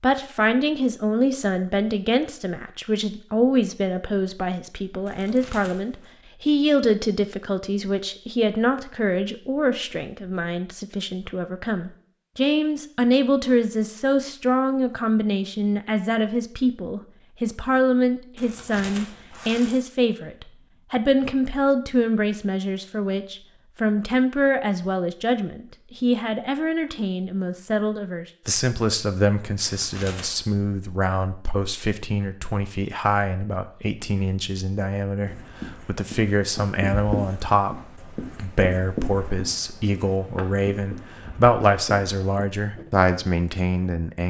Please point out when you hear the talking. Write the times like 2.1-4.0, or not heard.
0.0-44.2.